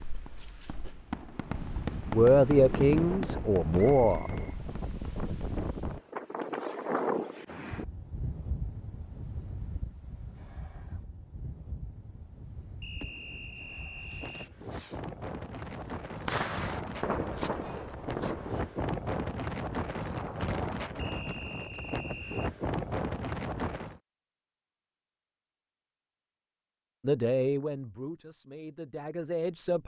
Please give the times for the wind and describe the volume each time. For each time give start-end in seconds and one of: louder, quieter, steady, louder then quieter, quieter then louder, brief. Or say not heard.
0.0-24.0 quieter then louder.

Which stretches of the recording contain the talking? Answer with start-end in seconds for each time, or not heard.
2.1-4.3, 27.0-29.8.